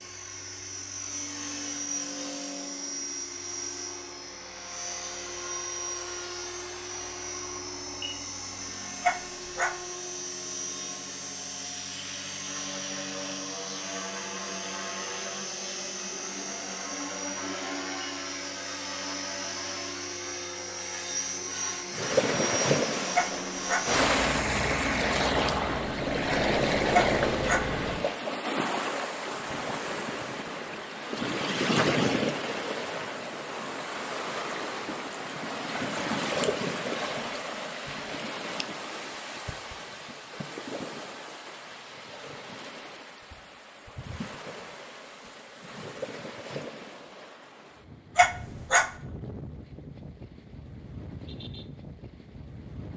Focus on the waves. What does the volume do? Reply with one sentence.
The loudness of the waves goes down.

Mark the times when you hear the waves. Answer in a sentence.
The waves can be heard from 21.9 to 52.9 s.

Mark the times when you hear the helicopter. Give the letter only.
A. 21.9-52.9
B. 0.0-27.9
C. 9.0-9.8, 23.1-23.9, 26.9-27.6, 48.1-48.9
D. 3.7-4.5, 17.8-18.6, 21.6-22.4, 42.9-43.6
B.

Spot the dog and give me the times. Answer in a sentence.
You can hear the dog from 9.0 to 9.8 s, from 23.1 to 23.9 s, from 26.9 to 27.6 s and from 48.1 to 48.9 s.